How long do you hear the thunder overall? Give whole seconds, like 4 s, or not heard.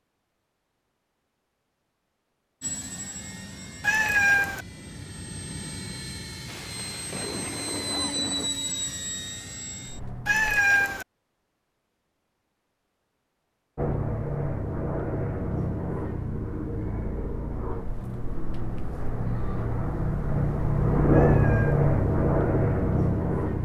2 s.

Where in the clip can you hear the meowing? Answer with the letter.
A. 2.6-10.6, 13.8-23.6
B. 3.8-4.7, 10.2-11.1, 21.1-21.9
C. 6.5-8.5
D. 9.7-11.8
B.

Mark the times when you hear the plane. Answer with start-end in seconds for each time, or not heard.
2.6-10.6, 13.8-23.6.